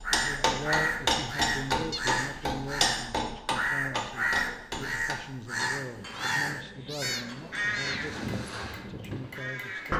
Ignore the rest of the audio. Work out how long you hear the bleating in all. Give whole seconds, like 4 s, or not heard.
not heard.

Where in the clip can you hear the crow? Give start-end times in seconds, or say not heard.
0.0-9.9.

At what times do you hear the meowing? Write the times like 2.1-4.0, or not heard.
1.9-2.5, 5.6-8.0.